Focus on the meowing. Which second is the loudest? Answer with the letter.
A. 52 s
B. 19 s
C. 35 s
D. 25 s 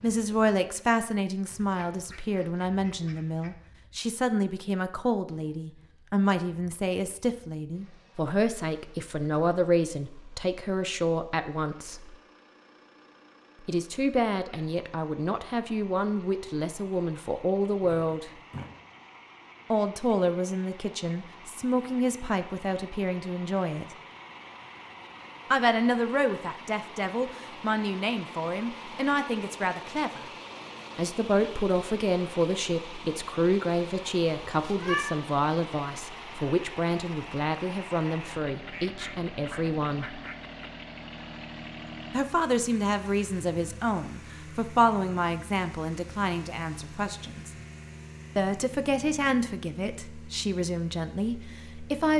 C.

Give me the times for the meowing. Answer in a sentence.
You can hear the meowing from 17.8 to 18.7 s and from 34.6 to 35.1 s.